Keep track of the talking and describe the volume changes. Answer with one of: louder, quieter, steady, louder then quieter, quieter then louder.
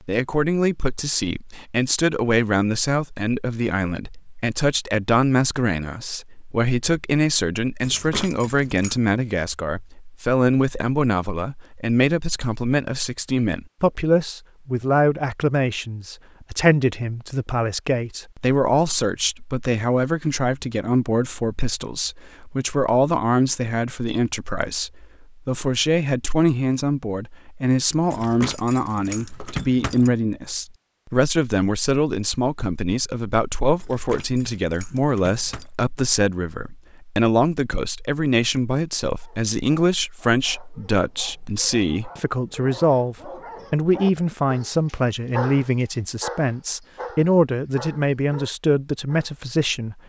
steady.